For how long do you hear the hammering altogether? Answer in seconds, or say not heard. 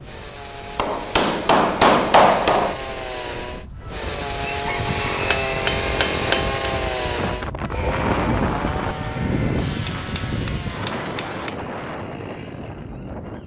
5 s.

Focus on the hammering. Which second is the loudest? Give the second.
2 s.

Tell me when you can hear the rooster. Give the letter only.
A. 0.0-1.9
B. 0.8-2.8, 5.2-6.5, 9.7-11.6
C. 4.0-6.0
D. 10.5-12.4
C.